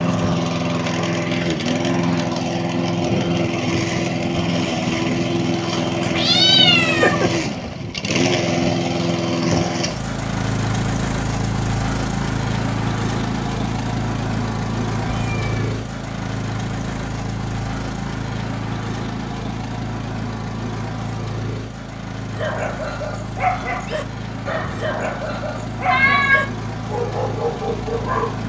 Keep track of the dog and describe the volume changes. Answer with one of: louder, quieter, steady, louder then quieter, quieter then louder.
steady.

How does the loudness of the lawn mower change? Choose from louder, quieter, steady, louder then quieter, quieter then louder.
quieter.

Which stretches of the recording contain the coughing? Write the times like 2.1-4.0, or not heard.
not heard.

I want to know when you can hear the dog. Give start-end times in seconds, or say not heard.
22.3-28.4.